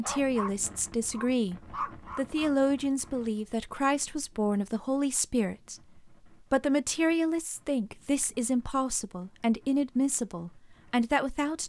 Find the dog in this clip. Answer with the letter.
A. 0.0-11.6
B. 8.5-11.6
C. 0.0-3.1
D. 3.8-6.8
C.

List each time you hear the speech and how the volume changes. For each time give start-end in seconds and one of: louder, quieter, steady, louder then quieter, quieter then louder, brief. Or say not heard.
0.0-11.6 steady.